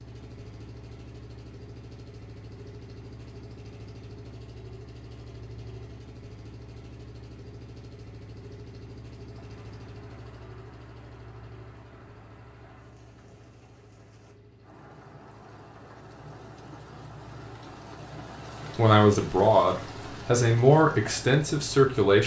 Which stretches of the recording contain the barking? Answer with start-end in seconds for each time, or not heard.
not heard.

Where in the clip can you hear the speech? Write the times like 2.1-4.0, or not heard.
18.8-22.2.